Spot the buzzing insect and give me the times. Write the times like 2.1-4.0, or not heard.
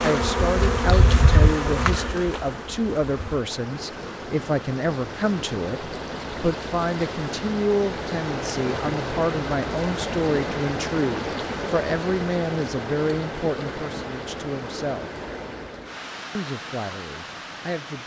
0.0-3.4.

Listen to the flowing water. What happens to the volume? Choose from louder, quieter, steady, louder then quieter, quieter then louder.
louder then quieter.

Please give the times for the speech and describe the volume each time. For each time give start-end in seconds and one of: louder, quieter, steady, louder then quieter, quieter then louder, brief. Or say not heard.
0.0-15.1 steady
16.4-18.0 brief.